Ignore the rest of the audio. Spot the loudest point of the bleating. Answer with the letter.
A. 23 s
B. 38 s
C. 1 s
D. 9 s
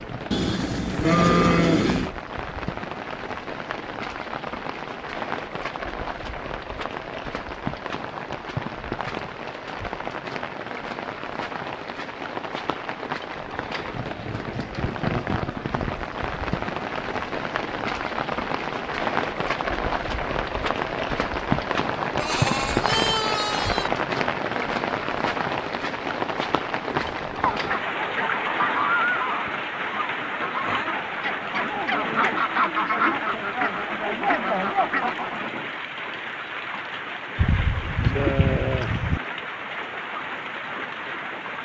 C.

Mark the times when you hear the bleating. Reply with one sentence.
The bleating can be heard from 0.3 to 2.1 s, from 22.1 to 23.9 s and from 37.4 to 39.2 s.